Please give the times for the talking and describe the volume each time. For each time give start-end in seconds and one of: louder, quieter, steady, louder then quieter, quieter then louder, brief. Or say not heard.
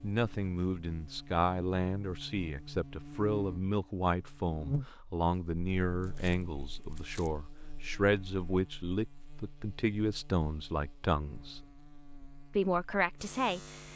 0.0-11.6 steady
12.6-13.9 brief.